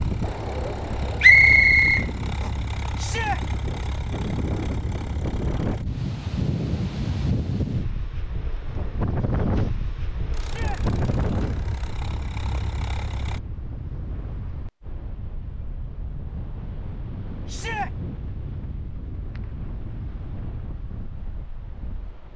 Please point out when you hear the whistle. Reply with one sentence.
The whistle can be heard from 1.2 to 2.5 s.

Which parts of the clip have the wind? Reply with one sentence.
You can hear the wind from 0.0 to 22.3 s.